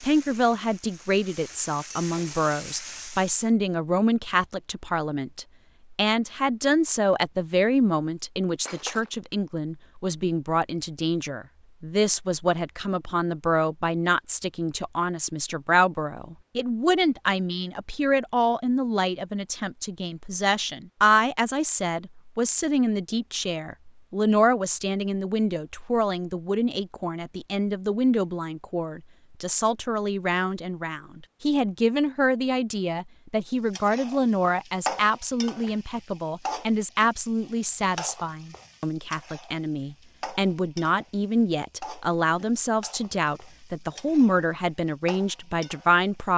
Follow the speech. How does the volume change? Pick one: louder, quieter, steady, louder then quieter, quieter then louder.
steady.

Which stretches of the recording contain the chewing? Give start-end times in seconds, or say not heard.
not heard.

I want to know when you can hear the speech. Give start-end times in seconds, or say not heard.
0.0-46.3.